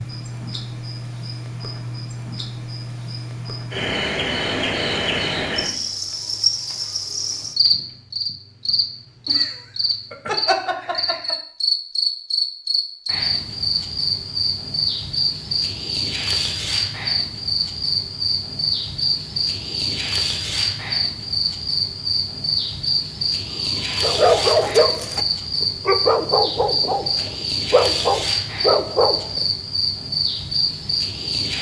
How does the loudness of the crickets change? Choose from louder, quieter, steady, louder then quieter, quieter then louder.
steady.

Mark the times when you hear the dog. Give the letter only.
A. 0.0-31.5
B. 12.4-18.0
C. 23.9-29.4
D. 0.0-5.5
C.